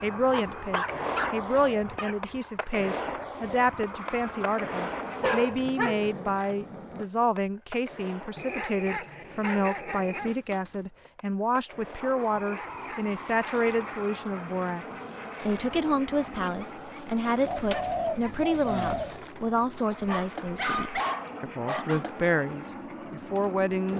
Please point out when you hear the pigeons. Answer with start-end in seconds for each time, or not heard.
17.4-19.2.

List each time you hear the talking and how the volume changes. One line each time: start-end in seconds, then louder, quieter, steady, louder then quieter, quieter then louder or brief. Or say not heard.
0.0-23.9 steady.